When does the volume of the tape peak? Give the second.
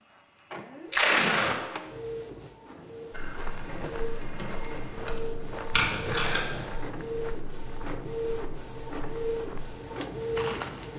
1 s.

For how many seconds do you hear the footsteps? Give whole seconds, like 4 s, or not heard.
8 s.